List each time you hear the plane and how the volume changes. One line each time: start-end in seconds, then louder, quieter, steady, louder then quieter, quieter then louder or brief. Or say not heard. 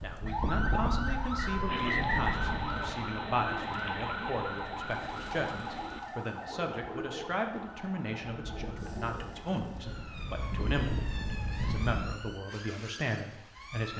0.0-2.7 brief
8.3-12.3 louder.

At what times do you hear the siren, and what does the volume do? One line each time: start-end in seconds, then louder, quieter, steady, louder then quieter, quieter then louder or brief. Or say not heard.
0.0-13.9 quieter.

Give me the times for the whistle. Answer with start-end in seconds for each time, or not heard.
1.4-2.4.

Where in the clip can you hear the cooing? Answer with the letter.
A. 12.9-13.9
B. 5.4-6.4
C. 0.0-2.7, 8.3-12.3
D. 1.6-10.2
D.